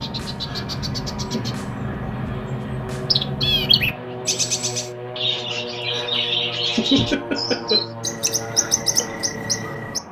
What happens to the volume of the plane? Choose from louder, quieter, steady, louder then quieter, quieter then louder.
steady.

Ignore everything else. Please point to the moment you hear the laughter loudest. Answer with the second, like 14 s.
7 s.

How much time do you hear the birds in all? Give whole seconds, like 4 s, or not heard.
10 s.